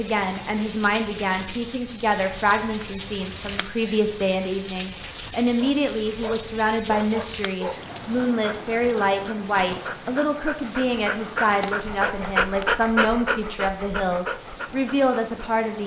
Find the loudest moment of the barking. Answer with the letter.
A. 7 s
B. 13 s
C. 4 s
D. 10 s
B.